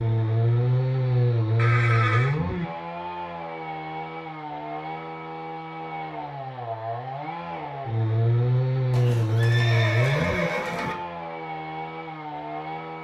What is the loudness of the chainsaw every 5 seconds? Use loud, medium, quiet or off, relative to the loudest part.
loud, loud, medium.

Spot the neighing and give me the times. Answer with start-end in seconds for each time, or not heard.
1.6-2.4, 8.9-10.9.